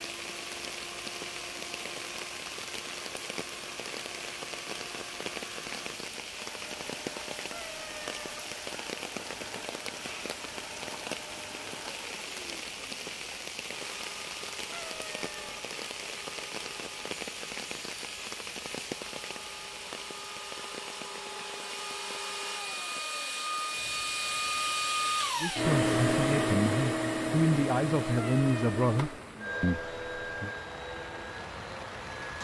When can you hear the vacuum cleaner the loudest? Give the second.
26 s.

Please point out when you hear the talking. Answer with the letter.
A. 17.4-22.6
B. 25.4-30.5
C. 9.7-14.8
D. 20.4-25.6
B.